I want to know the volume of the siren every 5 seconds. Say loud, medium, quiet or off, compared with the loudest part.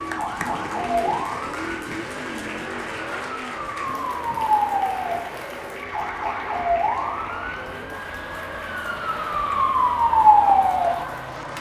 medium, medium, loud.